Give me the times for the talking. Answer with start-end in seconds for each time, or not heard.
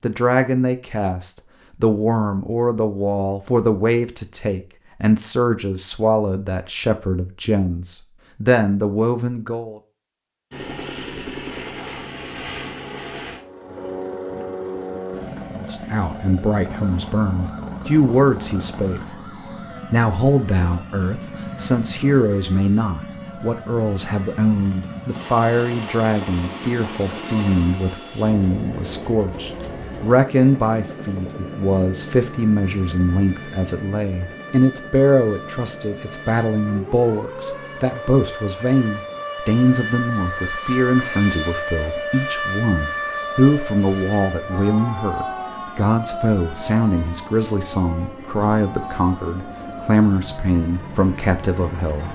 0.0-9.8, 15.6-19.1, 19.9-52.0.